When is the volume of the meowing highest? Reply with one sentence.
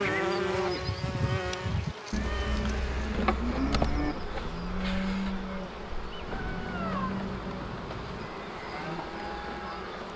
The volume of the meowing peaks at 7 seconds.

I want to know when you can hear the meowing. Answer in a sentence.
You can hear the meowing from 1.2 to 2.6 s and from 6.2 to 8.3 s.